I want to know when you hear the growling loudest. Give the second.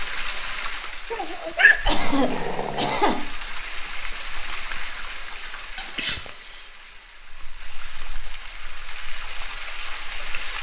2 s.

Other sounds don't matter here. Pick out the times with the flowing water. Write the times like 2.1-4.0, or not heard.
0.0-10.5.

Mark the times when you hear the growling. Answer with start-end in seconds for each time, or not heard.
1.1-3.0.